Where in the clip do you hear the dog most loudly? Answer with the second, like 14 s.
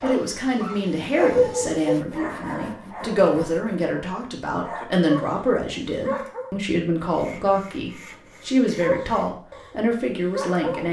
1 s.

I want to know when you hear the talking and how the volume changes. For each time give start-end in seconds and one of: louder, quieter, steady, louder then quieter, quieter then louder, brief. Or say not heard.
0.0-10.8 steady.